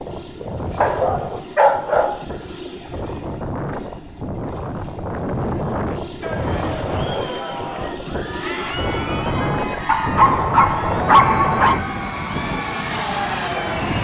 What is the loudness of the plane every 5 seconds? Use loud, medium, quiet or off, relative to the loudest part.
medium, loud, loud.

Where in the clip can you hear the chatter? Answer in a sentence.
The chatter can be heard from 6.2 to 13.9 s.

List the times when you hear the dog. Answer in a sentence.
You can hear the dog from 0.8 to 2.2 s and from 9.8 to 11.8 s.